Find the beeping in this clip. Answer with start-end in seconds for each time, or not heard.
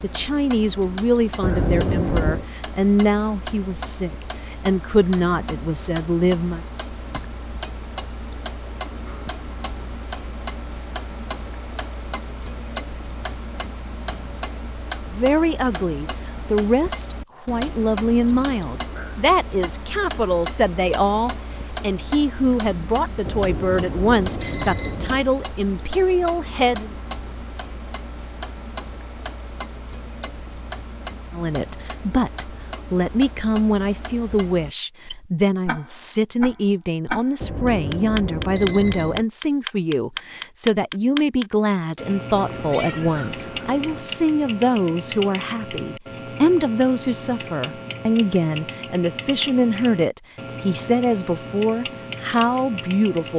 1.4-2.5, 23.2-25.2, 37.4-39.2.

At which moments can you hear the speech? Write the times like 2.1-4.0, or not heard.
0.0-6.7, 15.1-26.9, 31.3-53.3.